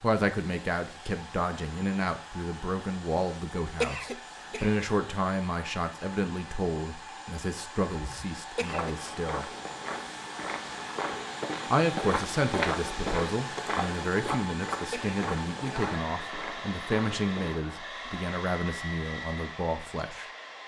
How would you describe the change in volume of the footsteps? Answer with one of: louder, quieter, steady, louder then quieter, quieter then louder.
louder then quieter.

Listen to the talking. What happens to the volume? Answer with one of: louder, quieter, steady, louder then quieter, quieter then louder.
steady.